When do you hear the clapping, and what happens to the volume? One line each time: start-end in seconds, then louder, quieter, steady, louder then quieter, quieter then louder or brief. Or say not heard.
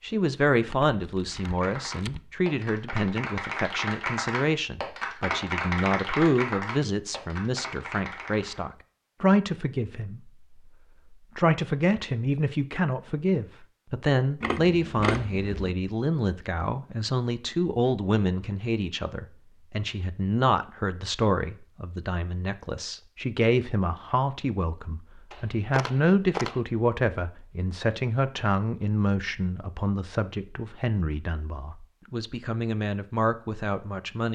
1.2-8.6 louder then quieter.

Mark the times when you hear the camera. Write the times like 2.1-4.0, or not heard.
0.7-2.2, 14.4-15.8, 25.3-26.6.